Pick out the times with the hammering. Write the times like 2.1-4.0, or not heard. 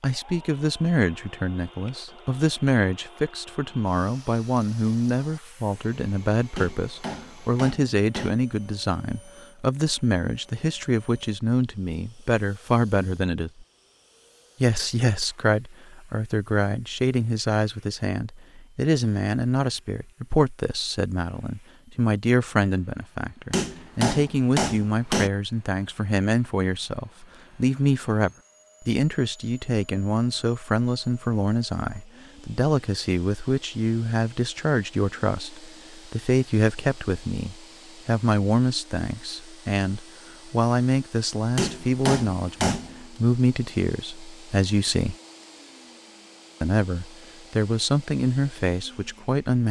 6.5-8.3, 23.5-25.3, 41.5-43.0.